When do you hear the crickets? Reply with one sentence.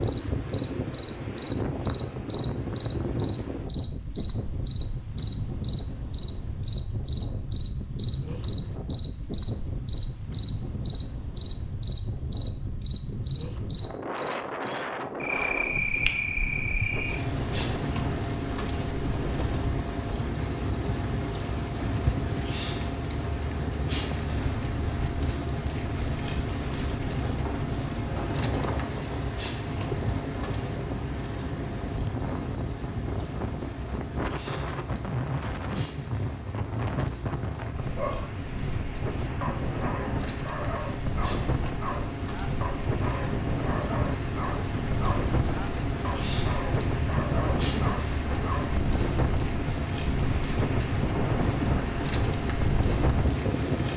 You can hear the crickets from 0.0 to 53.9 s.